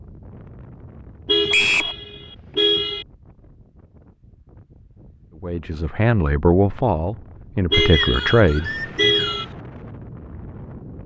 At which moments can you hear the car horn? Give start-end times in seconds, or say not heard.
1.2-3.0, 7.7-9.4.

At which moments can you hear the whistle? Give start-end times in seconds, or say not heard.
1.5-1.9, 7.8-9.5.